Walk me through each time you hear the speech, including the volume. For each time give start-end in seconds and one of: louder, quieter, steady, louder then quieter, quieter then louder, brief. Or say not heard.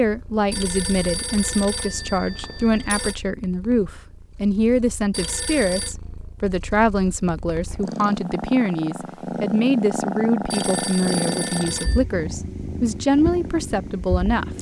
0.0-14.5 steady.